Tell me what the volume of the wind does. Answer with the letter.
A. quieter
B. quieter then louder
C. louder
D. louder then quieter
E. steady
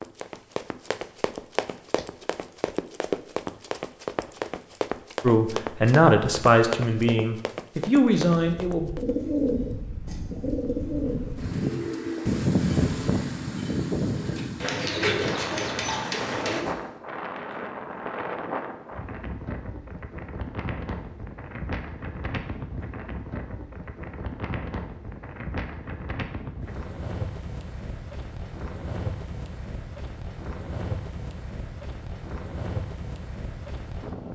A.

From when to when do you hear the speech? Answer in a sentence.
The speech can be heard from 5.2 to 8.9 s.